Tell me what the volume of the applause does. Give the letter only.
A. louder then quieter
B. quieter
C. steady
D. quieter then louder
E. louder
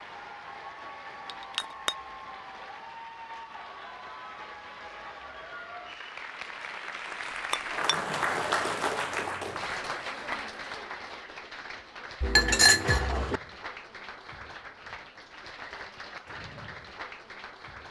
A.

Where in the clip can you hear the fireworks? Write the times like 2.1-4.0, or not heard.
not heard.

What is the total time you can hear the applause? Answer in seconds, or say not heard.
18 s.